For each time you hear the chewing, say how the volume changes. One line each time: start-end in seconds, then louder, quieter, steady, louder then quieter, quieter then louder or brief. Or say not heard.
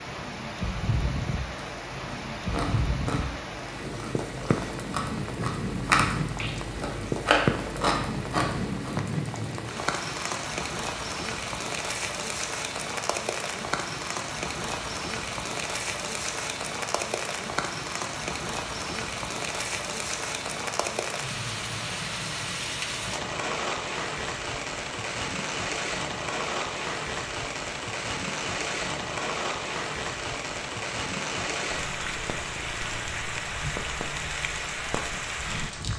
1.6-8.9 quieter then louder.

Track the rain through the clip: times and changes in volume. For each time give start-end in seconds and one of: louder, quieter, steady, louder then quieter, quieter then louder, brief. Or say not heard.
0.0-35.9 steady.